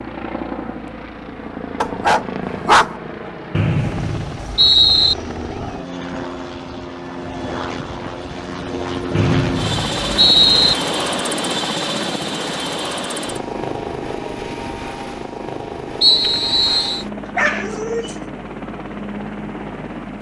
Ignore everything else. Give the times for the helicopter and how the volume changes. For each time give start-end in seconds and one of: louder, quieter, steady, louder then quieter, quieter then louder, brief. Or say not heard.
0.0-20.1 louder then quieter.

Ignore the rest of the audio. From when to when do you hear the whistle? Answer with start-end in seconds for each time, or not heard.
3.5-5.2, 9.1-10.8, 16.0-17.1.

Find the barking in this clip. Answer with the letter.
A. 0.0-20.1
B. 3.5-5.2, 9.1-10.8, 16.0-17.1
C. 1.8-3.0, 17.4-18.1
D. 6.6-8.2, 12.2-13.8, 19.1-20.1
C.